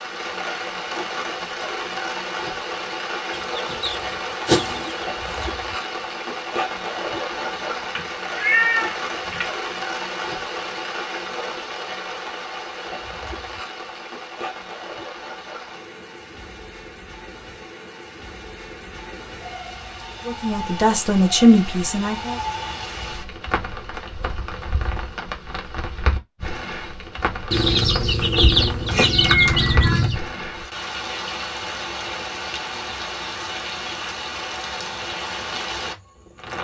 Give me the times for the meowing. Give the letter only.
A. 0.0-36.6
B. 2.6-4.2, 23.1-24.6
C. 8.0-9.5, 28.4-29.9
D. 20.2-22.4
C.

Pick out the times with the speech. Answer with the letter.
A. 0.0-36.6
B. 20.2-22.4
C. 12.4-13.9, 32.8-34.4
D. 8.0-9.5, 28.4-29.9
B.